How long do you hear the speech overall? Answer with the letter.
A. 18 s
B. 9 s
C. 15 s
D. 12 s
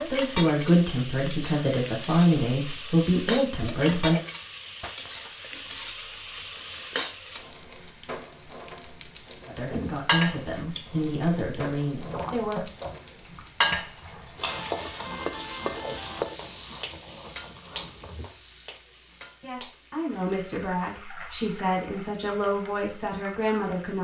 D.